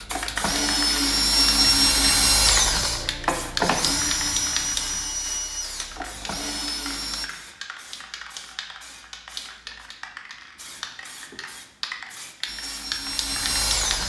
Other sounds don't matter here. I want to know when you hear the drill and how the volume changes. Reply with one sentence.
The drill can be heard from 0.0 to 7.3 s, getting quieter; and briefly from 12.4 to 14.0 s.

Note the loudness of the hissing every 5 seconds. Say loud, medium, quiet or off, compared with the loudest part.
loud, medium, loud.